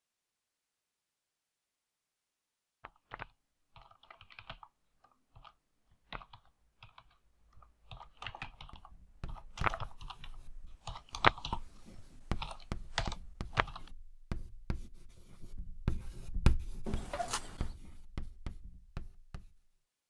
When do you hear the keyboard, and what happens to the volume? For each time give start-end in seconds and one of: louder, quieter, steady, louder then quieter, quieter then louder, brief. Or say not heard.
2.8-13.9 louder then quieter.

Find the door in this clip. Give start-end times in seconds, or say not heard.
16.9-17.8.